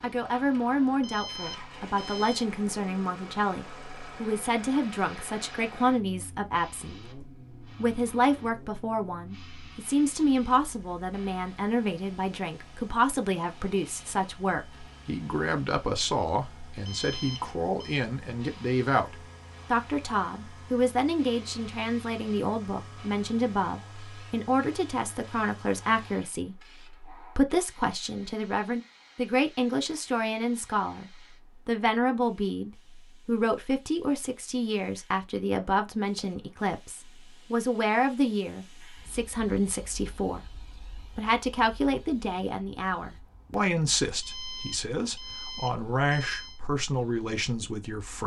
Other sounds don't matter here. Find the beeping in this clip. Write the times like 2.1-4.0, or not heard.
1.0-2.5, 16.8-18.0, 44.2-46.6.